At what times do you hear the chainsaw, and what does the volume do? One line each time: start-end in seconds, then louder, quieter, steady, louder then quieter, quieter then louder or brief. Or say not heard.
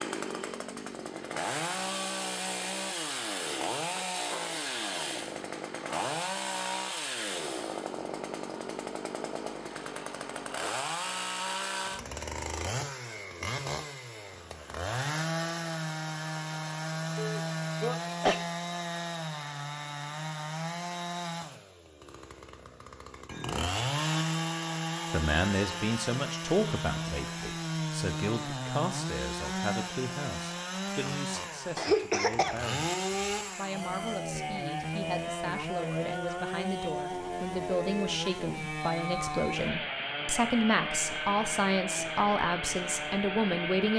0.0-43.9 steady.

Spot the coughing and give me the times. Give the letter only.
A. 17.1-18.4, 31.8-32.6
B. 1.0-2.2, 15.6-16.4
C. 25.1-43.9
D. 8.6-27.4
A.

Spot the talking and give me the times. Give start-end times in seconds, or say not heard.
25.1-43.9.